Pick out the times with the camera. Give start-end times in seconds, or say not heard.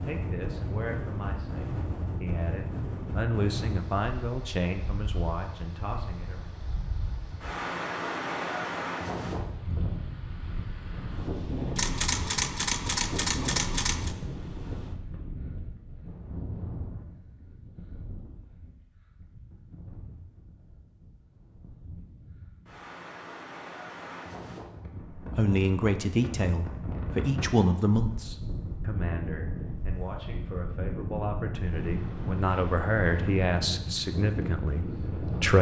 11.8-14.2.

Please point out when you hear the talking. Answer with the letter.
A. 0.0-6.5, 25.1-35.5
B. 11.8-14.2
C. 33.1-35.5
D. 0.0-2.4
A.